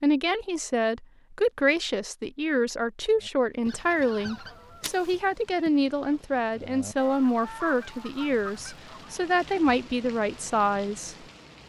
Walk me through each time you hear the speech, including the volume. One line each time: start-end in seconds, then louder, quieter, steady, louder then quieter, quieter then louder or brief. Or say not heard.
0.0-11.2 steady.